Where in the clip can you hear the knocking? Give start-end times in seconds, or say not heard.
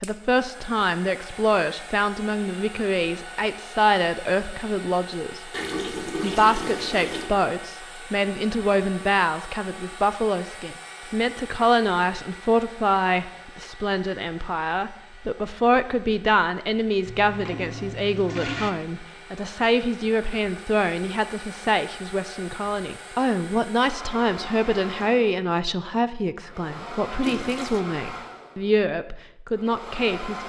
not heard.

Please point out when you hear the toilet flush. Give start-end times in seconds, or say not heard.
5.5-7.3, 17.1-18.7, 27.2-27.8.